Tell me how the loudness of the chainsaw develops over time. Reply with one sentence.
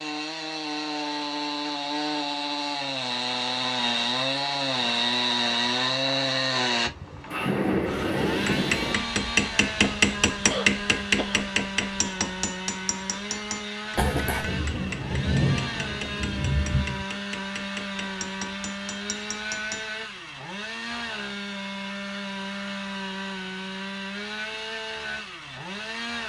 The loudness of the chainsaw goes down.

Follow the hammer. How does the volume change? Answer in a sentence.
The loudness of the hammer goes down.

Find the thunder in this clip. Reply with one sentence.
You can hear the thunder from 7.3 to 8.9 s and from 14.0 to 17.1 s.